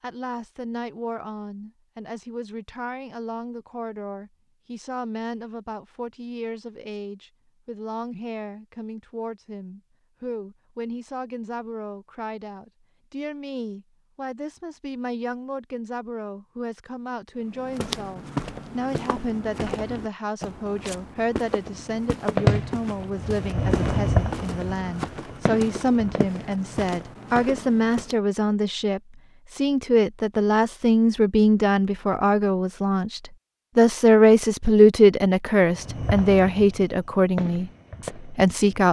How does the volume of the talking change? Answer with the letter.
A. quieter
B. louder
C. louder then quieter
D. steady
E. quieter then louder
B.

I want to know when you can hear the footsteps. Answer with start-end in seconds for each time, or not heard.
17.5-28.1.